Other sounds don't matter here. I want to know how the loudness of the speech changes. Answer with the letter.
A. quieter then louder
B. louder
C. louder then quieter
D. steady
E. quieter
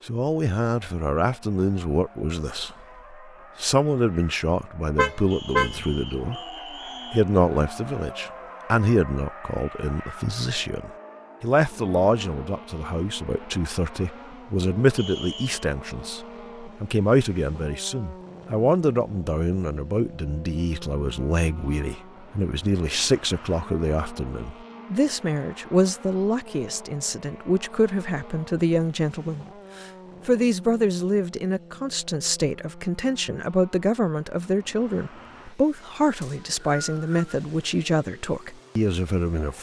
D.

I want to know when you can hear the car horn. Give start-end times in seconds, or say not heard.
5.0-5.8.